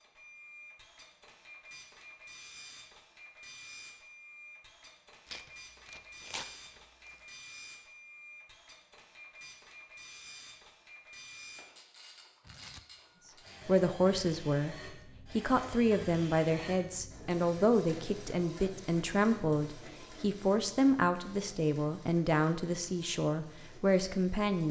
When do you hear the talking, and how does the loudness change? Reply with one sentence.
You can hear the talking from 13.7 to 24.6 s, at a steady volume.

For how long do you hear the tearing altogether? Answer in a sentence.
The tearing can be heard for 3 seconds in total.